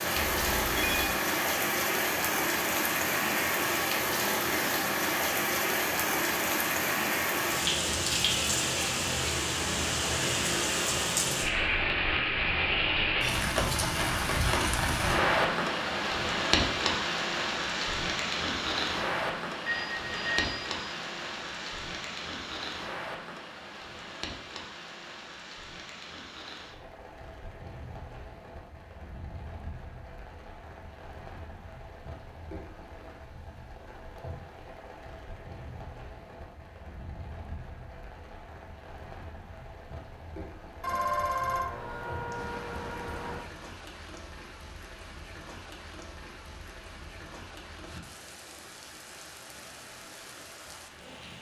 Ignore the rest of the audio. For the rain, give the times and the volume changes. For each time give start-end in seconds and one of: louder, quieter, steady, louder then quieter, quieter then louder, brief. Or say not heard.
0.0-51.3 quieter.